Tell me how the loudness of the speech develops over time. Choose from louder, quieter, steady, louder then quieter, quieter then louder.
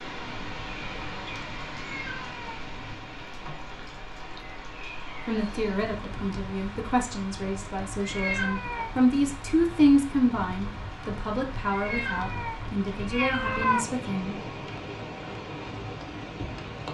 louder then quieter.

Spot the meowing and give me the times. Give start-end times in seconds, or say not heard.
1.9-2.6, 8.0-8.9, 11.7-13.8.